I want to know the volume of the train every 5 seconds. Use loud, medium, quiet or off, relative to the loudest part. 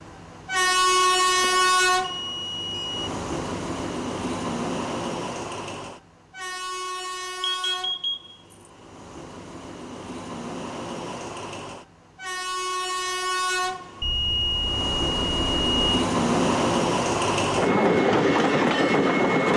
loud, quiet, medium, loud.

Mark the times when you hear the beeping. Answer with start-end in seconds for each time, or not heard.
0.8-3.1, 7.6-8.3, 14.0-15.9.